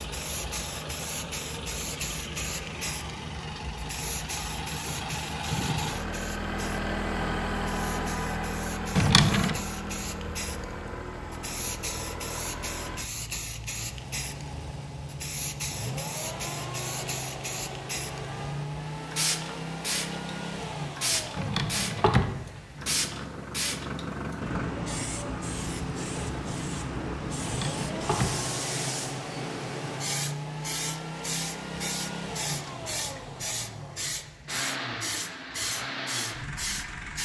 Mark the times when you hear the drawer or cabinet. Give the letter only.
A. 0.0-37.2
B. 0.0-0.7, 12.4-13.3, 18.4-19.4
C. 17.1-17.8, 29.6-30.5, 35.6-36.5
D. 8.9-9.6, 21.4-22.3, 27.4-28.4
D.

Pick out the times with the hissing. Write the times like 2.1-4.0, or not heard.
0.0-37.2.